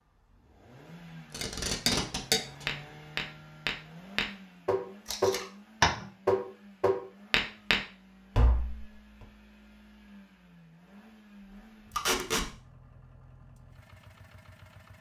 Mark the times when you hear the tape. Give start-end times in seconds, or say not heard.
1.3-2.6, 5.0-5.5, 11.9-12.4.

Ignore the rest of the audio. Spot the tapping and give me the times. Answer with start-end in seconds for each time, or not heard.
1.4-8.8.